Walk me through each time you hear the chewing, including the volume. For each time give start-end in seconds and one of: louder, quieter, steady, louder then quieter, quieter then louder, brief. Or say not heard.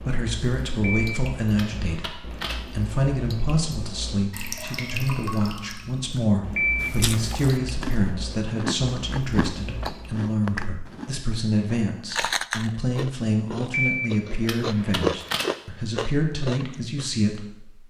6.8-17.1 louder.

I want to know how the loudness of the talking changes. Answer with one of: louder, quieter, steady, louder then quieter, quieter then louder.
steady.